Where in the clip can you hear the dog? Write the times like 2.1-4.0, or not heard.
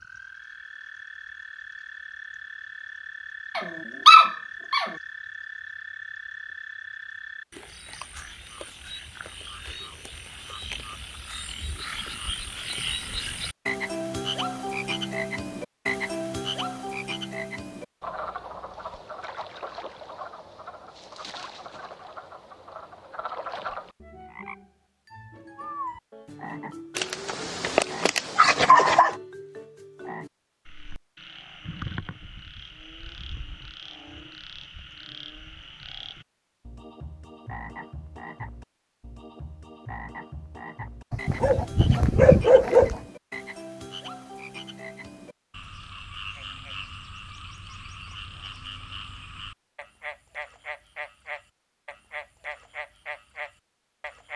3.5-4.9, 26.9-29.1, 41.1-43.0.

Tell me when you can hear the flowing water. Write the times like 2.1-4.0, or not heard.
not heard.